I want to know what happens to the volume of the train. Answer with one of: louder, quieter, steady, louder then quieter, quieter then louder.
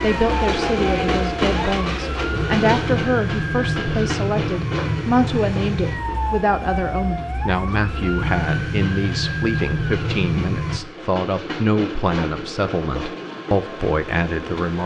quieter then louder.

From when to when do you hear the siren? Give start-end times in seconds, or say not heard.
0.0-10.8.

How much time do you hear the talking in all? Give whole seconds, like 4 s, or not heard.
15 s.